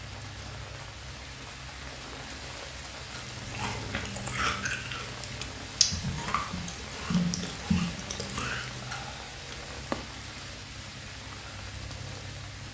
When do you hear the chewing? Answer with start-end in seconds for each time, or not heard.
3.1-9.1.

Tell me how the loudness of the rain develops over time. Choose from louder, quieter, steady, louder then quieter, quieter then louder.
steady.